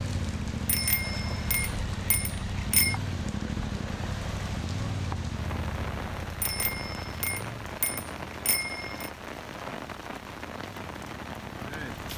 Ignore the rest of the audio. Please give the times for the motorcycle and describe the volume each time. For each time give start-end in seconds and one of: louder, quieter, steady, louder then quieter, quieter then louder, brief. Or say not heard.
0.0-12.1 quieter.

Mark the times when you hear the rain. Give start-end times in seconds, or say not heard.
0.0-12.1.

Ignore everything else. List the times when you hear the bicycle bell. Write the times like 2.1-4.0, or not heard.
0.7-3.0, 6.4-9.1.